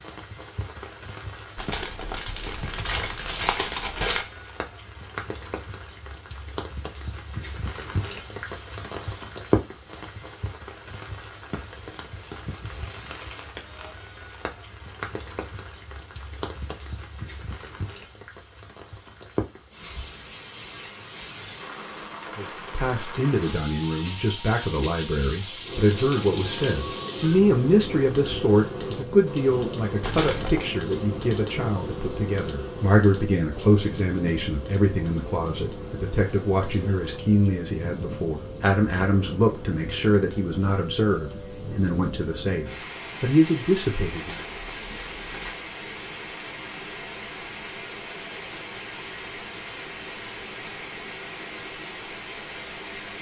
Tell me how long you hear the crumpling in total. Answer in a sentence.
The crumpling can be heard for 5 seconds in total.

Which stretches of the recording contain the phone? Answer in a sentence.
The phone can't be heard in this clip.